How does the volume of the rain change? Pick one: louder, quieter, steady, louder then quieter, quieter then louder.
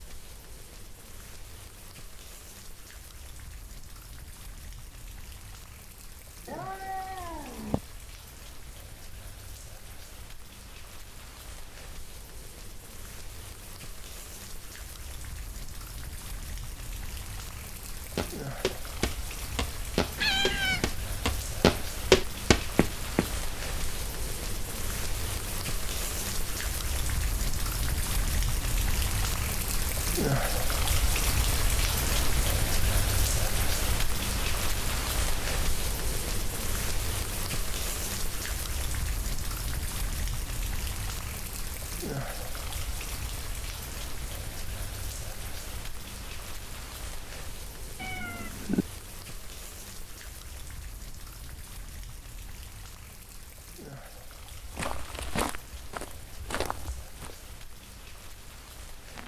louder then quieter.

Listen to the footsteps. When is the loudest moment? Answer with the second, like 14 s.
22 s.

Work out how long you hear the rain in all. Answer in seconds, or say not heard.
59 s.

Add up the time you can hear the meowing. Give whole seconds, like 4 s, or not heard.
3 s.